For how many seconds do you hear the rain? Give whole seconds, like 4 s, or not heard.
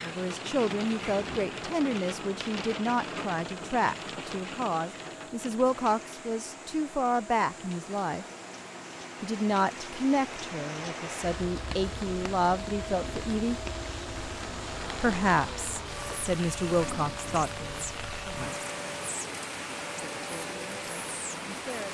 22 s.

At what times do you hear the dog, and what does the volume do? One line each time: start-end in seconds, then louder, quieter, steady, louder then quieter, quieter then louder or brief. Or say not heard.
not heard.